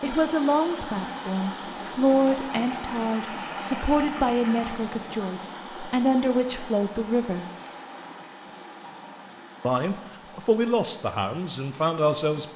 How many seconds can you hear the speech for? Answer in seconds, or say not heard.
10 s.